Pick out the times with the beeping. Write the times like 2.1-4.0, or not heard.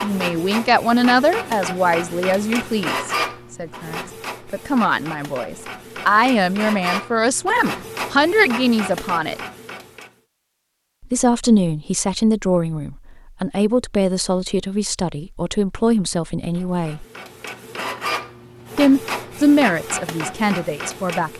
not heard.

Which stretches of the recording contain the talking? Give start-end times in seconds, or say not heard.
0.0-9.3, 11.1-17.1, 18.8-21.3.